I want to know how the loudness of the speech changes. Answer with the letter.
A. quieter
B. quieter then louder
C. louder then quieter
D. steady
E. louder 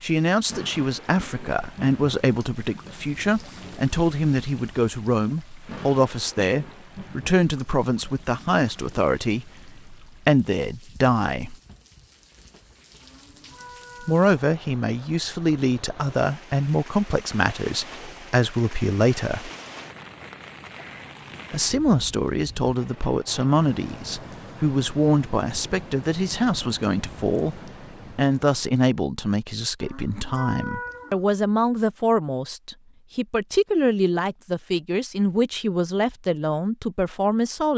D.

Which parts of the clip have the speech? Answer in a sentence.
You can hear the speech from 0.0 to 11.6 s, from 14.0 to 19.5 s and from 21.5 to 37.7 s.